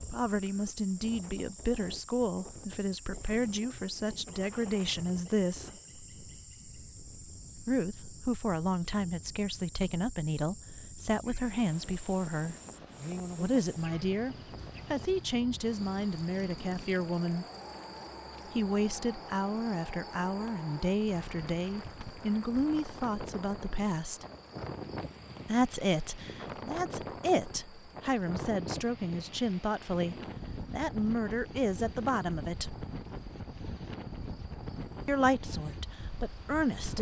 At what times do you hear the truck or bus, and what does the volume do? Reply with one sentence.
You can't hear the truck or bus here.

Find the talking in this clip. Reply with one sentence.
You can hear the talking from 0.0 to 5.8 s, from 7.7 to 12.6 s, from 13.3 to 17.4 s, from 18.4 to 24.2 s, from 25.4 to 32.9 s and from 35.0 to 36.9 s.